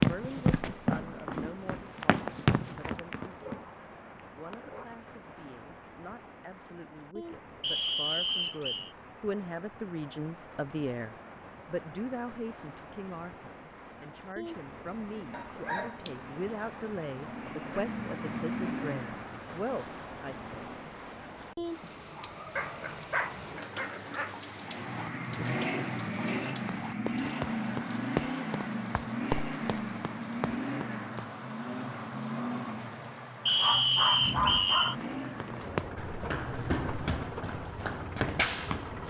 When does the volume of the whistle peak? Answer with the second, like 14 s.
34 s.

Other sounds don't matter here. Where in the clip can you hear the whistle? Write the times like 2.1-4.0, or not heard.
7.6-8.9, 33.5-35.0.